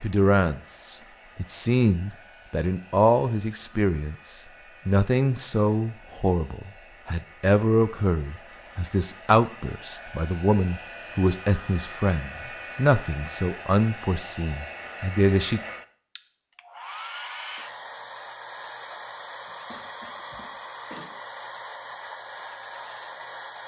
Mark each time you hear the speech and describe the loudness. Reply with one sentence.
You can hear the speech from 0.0 to 15.6 s, at a steady volume.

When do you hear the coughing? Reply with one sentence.
You can hear the coughing from 19.7 to 21.1 s.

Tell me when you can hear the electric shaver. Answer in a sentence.
You can't hear the electric shaver here.